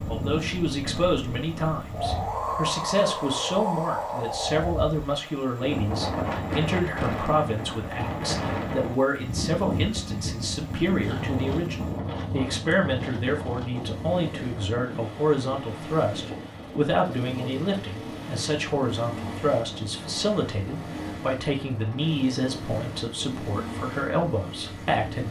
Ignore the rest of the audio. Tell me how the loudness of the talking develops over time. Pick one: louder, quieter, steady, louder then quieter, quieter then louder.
steady.